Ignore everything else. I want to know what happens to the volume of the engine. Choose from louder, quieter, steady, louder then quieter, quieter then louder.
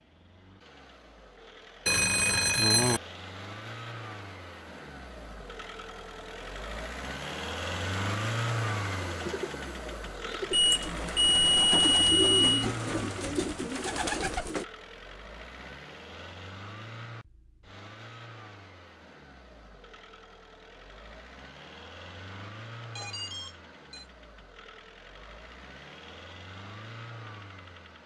louder then quieter.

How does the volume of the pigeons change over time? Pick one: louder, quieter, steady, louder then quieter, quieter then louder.
louder.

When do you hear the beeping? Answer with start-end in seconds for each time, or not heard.
1.9-3.0, 10.5-12.7, 22.8-24.1.